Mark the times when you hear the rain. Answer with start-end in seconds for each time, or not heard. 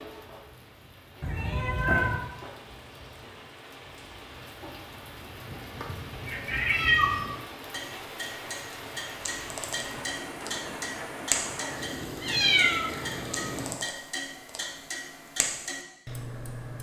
0.0-13.8.